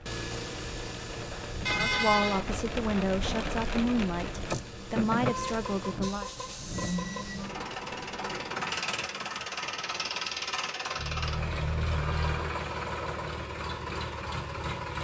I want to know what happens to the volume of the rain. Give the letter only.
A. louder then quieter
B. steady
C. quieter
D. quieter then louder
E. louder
A.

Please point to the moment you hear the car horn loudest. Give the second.
2 s.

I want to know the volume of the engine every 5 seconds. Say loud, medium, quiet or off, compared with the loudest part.
medium, loud, loud.